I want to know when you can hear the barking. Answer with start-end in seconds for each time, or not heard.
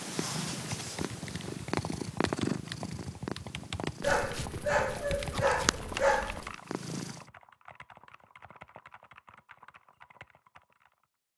4.0-6.5.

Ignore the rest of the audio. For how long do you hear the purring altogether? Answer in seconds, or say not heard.
7 s.